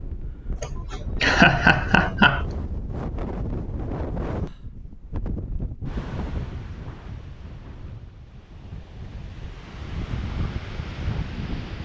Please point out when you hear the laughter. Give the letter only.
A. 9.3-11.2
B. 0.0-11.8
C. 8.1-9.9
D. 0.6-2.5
D.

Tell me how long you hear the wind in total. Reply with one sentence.
You can hear the wind for 12 seconds altogether.